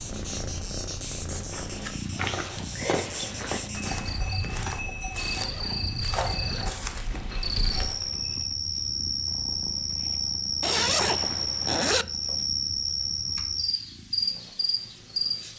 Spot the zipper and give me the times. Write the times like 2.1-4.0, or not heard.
2.1-3.5, 5.2-6.7, 10.6-12.1.